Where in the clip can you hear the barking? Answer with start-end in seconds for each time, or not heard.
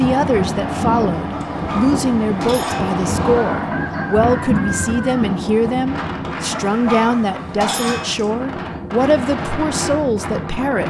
1.3-2.9, 6.5-8.3.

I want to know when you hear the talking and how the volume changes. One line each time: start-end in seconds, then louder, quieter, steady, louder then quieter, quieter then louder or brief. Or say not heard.
0.0-10.8 steady.